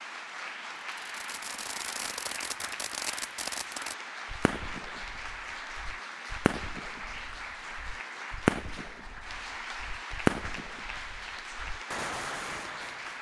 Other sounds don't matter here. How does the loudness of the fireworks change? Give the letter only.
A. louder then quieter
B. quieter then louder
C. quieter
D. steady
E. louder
A.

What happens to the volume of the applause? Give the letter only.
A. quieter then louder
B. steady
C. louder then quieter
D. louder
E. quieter
B.